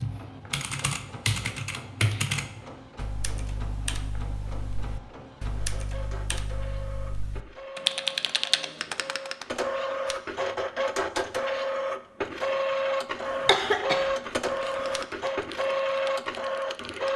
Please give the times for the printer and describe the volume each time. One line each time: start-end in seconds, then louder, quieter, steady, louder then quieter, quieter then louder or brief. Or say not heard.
0.0-17.1 louder.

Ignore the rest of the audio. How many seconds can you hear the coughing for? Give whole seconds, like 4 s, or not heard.
2 s.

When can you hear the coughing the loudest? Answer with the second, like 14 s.
14 s.